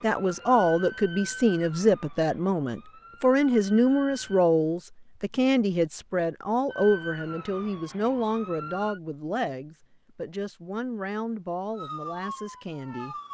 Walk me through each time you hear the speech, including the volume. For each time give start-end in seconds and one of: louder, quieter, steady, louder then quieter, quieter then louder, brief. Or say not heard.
0.0-13.2 quieter.